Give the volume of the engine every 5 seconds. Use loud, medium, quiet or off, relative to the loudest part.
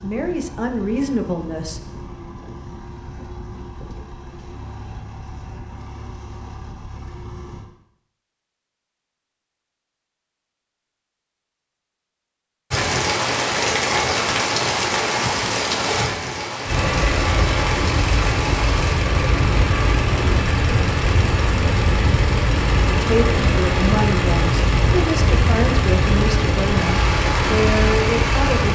quiet, quiet, off, loud, loud, loud.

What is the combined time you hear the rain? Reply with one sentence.
You can hear the rain for 16 seconds altogether.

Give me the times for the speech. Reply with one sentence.
The speech can be heard from 0.0 to 1.8 s and from 22.9 to 28.6 s.